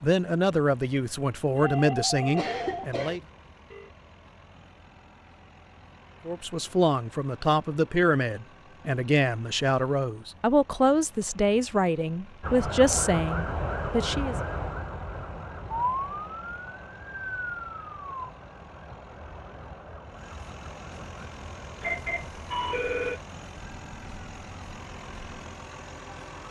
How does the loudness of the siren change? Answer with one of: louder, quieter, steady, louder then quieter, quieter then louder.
quieter.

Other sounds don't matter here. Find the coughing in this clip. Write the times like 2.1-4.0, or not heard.
2.4-3.2.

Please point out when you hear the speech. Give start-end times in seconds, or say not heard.
0.0-3.2, 6.2-14.3.